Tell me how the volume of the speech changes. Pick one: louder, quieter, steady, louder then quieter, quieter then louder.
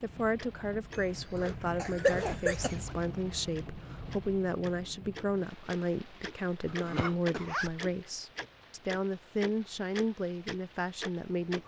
steady.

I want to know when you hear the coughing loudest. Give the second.
2 s.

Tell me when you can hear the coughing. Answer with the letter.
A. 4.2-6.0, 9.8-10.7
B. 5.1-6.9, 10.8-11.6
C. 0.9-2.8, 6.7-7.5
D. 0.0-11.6
C.